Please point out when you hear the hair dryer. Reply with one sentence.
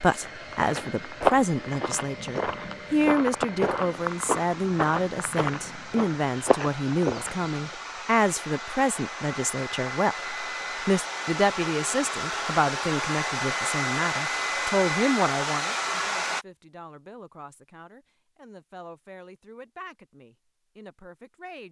You can hear the hair dryer from 0.0 to 16.4 s.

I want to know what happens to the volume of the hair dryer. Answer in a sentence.
The loudness of the hair dryer goes up.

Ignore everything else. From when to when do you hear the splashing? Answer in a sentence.
You can't hear the splashing here.